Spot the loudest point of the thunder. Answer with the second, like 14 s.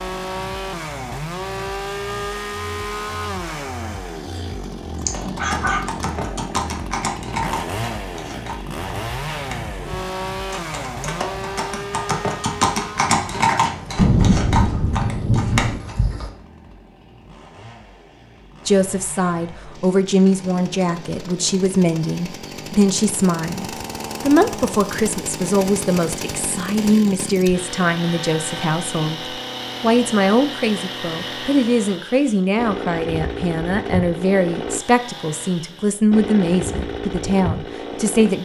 14 s.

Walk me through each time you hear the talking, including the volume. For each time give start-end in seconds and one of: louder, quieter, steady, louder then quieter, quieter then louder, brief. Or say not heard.
18.6-38.4 steady.